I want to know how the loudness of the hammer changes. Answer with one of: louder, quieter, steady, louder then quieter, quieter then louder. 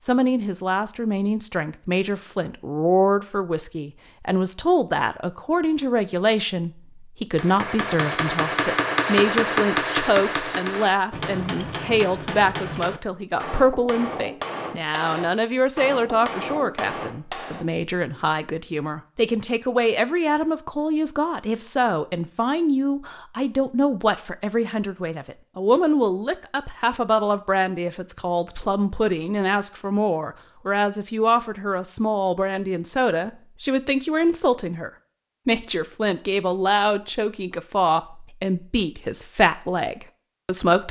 quieter.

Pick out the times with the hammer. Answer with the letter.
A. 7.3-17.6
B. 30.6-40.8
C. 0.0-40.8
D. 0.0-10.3
A.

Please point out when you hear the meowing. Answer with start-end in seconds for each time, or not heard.
not heard.